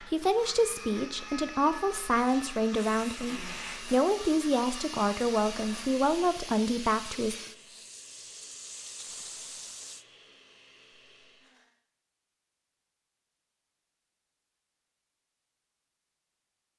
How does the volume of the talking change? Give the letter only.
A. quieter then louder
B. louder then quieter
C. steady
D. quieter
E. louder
C.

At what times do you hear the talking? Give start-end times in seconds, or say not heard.
0.0-7.3.